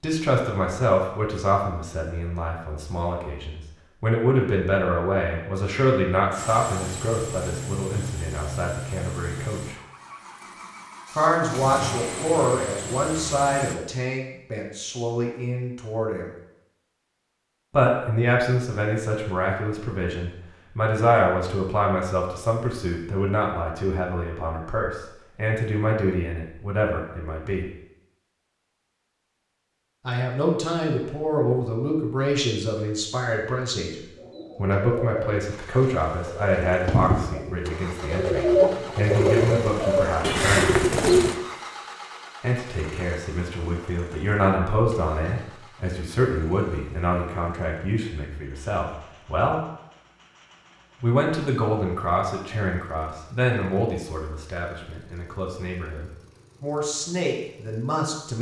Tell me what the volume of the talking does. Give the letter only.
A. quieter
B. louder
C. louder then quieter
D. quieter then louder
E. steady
E.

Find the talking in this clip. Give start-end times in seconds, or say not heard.
0.0-9.8, 11.1-16.3, 17.7-27.6, 30.1-40.8, 42.4-49.6, 51.0-58.3.